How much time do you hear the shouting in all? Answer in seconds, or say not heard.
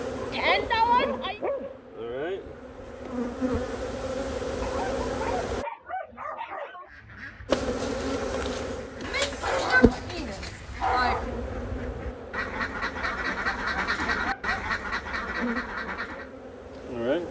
3 s.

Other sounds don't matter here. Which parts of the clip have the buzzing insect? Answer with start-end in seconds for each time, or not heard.
0.0-5.7, 7.5-17.2.